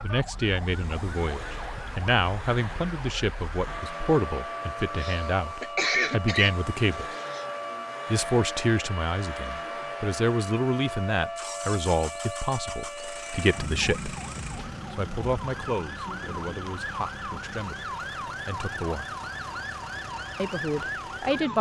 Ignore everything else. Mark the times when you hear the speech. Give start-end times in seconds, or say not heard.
0.0-7.0, 8.1-14.2, 14.9-19.1, 20.4-21.5.